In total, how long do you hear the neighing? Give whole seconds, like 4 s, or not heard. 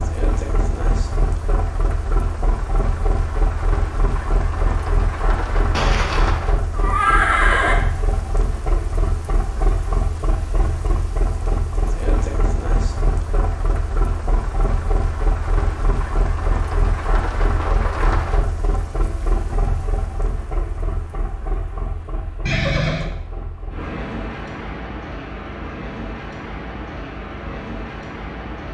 3 s.